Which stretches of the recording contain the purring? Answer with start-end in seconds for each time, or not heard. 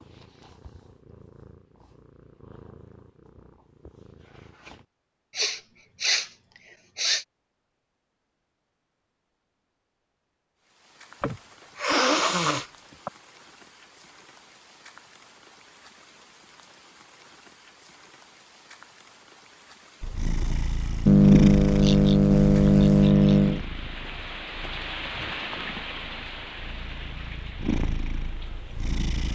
0.0-4.8, 20.0-29.3.